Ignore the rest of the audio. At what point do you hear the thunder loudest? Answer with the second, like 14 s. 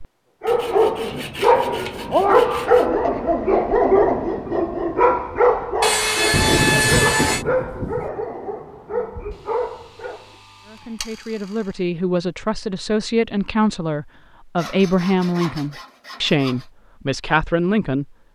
7 s.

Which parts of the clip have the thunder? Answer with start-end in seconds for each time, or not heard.
6.3-8.1.